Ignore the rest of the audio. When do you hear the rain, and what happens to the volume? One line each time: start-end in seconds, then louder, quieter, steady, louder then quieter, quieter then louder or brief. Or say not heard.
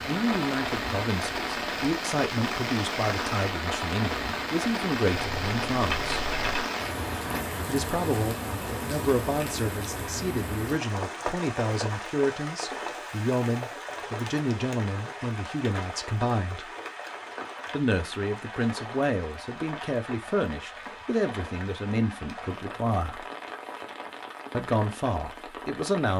0.0-26.1 quieter.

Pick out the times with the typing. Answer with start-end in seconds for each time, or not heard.
5.1-6.7.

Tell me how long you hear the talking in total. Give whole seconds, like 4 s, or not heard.
22 s.